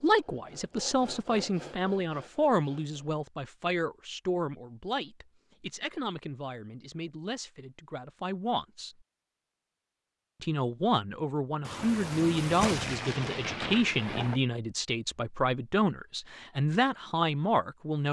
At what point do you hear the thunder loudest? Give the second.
13 s.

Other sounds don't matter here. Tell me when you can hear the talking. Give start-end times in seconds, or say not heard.
0.0-8.9, 10.4-18.0.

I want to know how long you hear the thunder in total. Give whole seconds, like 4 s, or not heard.
3 s.